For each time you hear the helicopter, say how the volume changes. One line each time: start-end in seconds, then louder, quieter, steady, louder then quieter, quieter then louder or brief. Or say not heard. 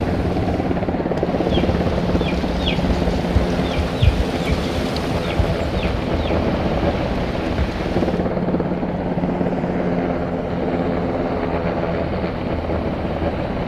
0.0-13.6 steady.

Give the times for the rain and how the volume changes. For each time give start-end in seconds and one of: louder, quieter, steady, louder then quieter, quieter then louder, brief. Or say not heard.
0.0-8.3 louder then quieter.